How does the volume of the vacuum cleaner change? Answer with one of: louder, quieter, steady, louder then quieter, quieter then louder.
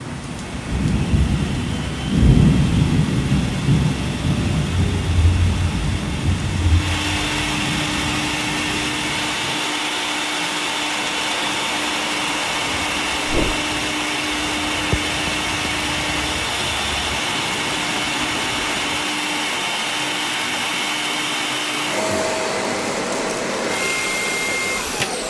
louder.